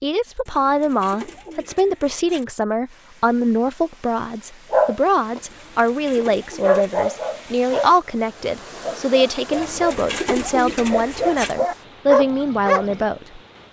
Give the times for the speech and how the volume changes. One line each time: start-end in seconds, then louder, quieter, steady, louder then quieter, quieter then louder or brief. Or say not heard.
0.0-13.4 steady.